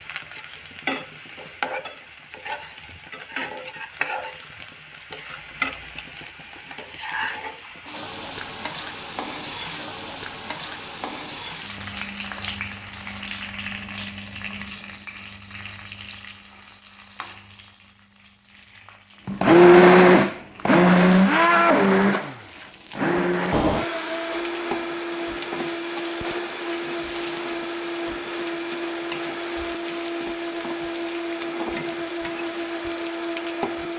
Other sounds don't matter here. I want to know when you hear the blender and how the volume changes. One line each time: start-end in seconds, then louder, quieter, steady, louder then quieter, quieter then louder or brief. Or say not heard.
19.2-33.9 quieter.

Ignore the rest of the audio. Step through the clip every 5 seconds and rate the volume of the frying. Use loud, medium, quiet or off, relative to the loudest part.
loud, loud, loud, medium, medium, loud, loud.